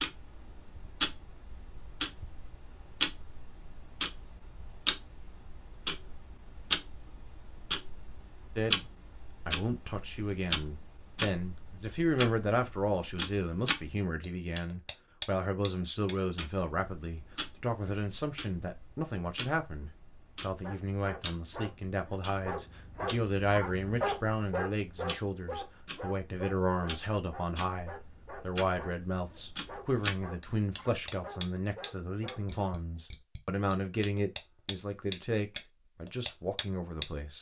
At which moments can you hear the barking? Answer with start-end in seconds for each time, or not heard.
20.6-32.5.